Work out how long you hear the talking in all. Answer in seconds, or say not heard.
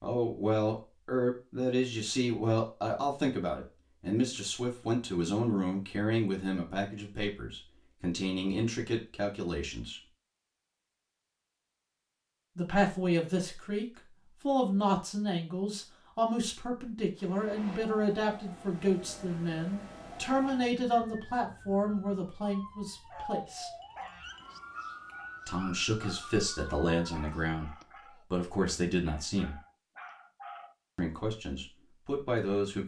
27 s.